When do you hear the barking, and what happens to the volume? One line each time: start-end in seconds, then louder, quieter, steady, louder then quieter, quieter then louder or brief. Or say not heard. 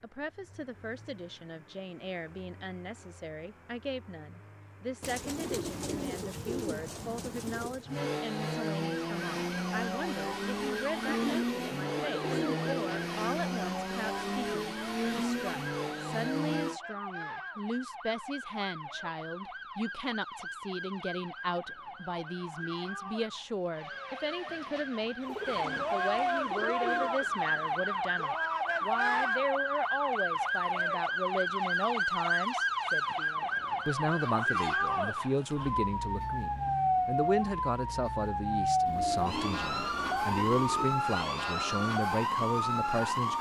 not heard.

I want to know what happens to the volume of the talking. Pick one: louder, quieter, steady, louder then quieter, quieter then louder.
louder.